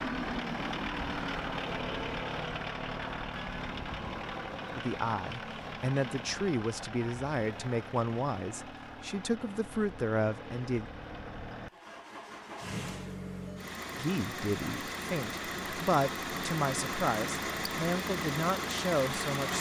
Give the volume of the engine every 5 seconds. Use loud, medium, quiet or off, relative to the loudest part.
loud, medium, medium, loud.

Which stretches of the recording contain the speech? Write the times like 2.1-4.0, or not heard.
4.8-10.8, 13.9-19.5.